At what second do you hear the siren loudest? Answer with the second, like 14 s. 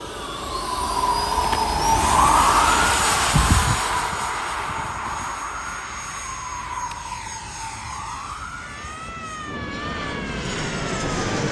2 s.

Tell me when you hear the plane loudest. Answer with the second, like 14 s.
3 s.